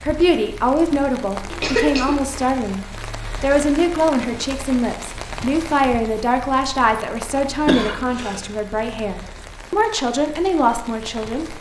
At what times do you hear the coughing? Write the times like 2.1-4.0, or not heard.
1.5-2.1, 7.7-8.4.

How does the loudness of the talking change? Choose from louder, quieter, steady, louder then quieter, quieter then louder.
steady.